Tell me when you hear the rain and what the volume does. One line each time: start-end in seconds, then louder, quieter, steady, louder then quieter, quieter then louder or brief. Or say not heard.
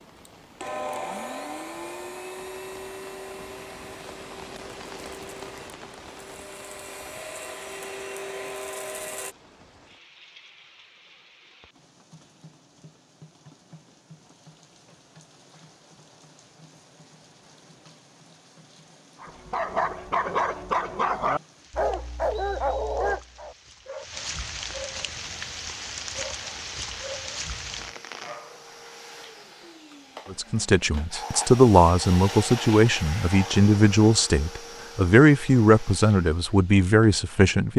0.0-28.4 quieter then louder.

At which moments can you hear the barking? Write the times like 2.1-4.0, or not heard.
19.2-28.9.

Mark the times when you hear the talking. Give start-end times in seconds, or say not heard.
30.3-37.7.